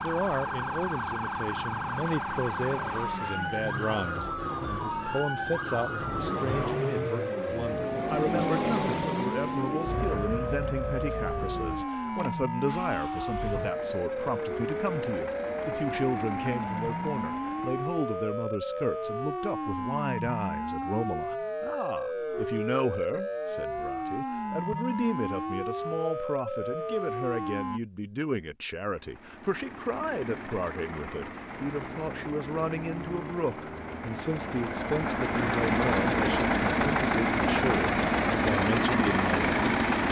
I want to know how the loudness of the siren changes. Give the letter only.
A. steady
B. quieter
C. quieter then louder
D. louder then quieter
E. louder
A.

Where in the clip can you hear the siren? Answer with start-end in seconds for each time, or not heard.
0.0-27.8.